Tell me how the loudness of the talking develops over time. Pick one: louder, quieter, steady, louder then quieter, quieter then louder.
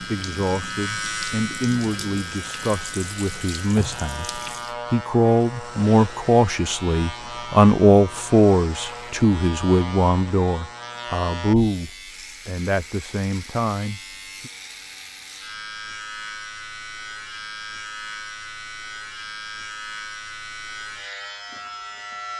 louder then quieter.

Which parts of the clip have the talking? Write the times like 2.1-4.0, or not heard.
0.0-14.5.